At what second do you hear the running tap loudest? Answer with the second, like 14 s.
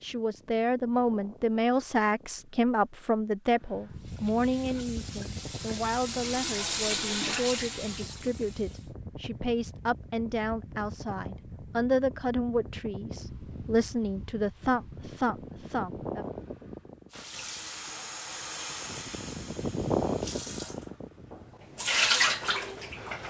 22 s.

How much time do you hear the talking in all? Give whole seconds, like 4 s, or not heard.
16 s.